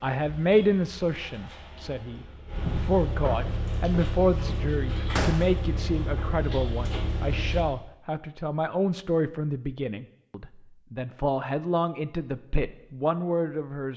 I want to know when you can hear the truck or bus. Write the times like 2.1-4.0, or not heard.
0.0-7.7.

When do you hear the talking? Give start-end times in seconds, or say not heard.
0.0-13.9.